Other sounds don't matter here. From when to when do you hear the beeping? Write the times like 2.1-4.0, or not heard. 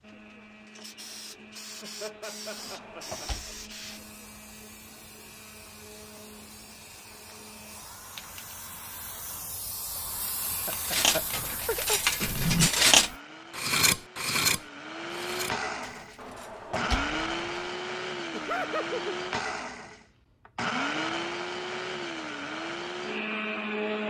not heard.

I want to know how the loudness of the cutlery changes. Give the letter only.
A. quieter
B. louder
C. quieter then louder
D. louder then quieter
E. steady
D.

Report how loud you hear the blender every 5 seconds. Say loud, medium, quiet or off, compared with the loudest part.
quiet, quiet, quiet, loud, loud.